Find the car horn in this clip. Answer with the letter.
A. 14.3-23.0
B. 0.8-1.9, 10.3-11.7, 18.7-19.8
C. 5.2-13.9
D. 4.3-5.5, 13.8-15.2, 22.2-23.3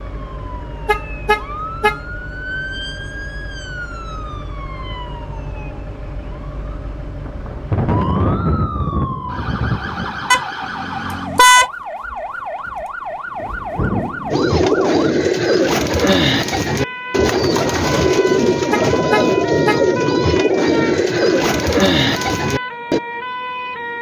B.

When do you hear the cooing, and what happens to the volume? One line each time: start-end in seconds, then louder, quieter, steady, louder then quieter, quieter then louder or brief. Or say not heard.
14.3-23.0 steady.